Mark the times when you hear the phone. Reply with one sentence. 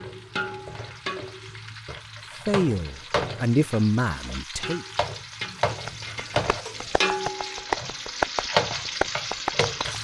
The phone can't be heard in this clip.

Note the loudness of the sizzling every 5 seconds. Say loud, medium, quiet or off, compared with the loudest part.
medium, loud.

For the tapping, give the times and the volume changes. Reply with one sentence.
The tapping can be heard from 5.8 to 9.9 s, getting louder.